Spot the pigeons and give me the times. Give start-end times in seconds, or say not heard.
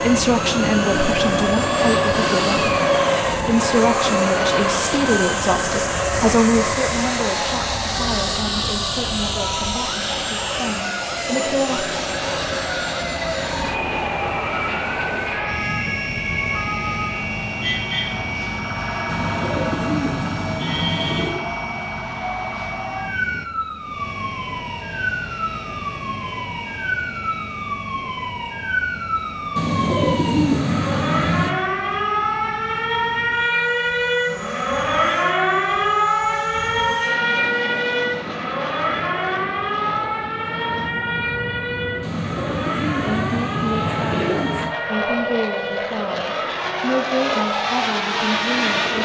0.3-2.8, 19.1-21.4, 29.6-31.5, 42.0-44.7.